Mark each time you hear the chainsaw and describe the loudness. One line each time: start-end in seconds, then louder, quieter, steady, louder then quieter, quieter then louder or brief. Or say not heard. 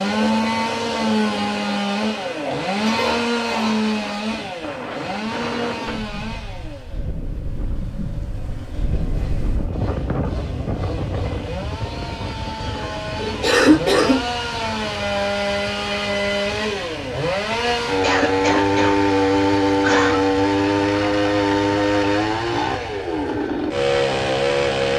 0.0-24.9 quieter then louder.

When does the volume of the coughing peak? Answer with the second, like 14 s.
14 s.